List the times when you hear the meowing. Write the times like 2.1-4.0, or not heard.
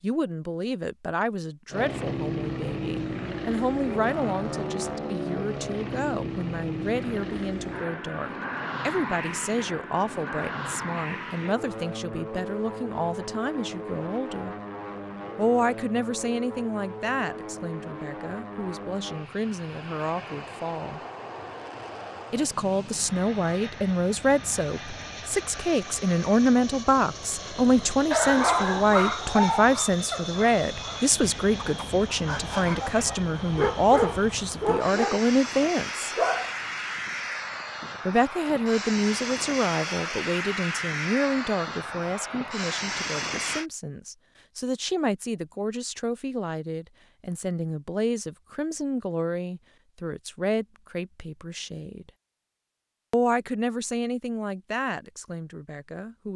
not heard.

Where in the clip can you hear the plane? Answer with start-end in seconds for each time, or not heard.
1.7-43.6.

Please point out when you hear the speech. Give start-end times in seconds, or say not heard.
0.0-14.6, 15.3-21.0, 22.3-36.1, 38.0-52.1, 53.1-56.3.